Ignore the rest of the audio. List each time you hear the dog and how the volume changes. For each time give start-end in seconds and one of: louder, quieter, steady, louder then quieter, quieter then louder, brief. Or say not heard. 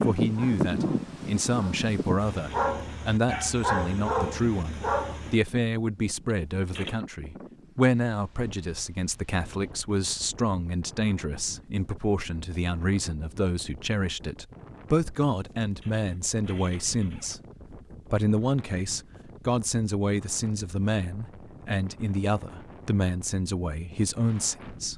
0.0-5.4 louder.